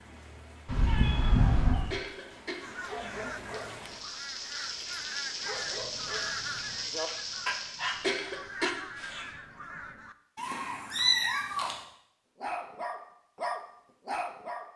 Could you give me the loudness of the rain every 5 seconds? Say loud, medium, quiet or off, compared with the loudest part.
medium, loud, off.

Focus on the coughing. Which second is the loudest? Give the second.
8 s.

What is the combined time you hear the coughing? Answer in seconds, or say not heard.
3 s.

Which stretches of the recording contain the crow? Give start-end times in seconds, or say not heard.
2.6-10.2.